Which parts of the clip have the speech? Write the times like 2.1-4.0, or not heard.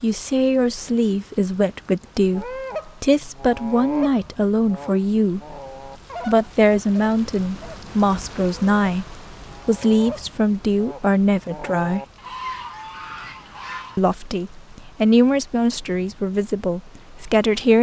0.0-5.4, 6.2-12.0, 13.9-17.7.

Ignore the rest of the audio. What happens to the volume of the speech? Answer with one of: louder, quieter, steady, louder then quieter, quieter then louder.
steady.